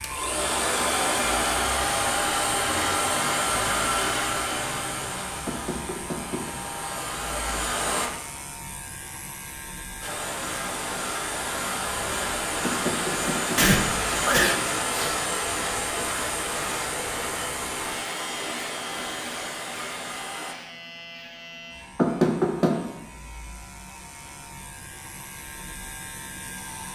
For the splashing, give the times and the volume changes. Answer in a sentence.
You can't hear the splashing here.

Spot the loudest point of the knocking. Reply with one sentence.
The volume of the knocking peaks at 22 seconds.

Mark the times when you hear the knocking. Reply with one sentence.
You can hear the knocking from 5.5 to 6.5 s, from 12.6 to 13.6 s and from 21.9 to 22.9 s.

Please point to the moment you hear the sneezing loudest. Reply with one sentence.
The volume of the sneezing peaks at 14 seconds.